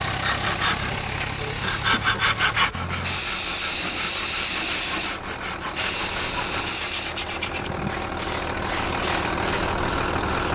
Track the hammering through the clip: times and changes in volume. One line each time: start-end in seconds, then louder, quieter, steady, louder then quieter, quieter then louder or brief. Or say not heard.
not heard.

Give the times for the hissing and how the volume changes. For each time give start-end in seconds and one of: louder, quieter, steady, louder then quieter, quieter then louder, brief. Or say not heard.
0.0-10.5 louder then quieter.